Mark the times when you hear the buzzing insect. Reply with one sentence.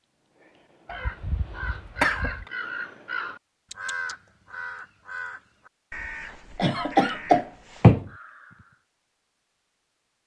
The buzzing insect can't be heard in this clip.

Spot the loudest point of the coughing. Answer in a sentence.
The loudest moment of the coughing is at 8 seconds.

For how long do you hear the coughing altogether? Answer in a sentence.
The coughing can be heard for 3 seconds in total.